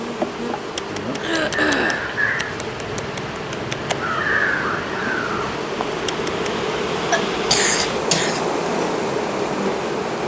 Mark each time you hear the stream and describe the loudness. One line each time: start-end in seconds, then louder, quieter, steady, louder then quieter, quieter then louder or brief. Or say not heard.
0.0-10.2 louder.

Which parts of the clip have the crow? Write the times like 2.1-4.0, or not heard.
0.8-6.7.